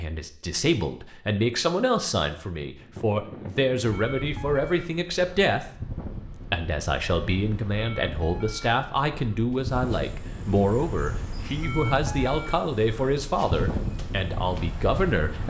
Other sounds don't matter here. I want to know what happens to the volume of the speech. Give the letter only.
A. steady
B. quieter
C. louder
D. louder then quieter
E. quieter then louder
A.